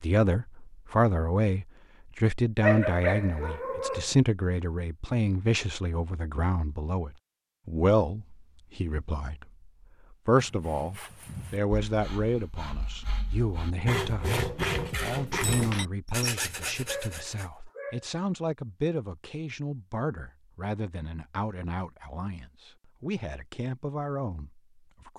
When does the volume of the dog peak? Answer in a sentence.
The volume of the dog peaks at 3 seconds.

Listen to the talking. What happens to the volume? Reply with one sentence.
The loudness of the talking goes down.